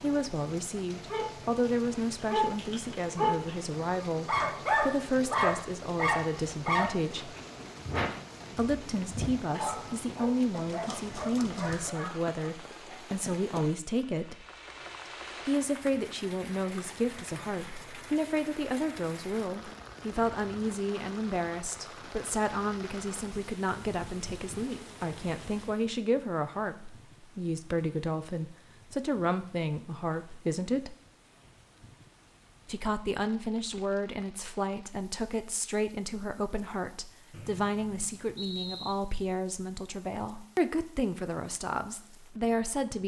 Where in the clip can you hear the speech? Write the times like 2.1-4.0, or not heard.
0.0-7.3, 8.6-14.4, 15.4-30.9, 32.6-43.0.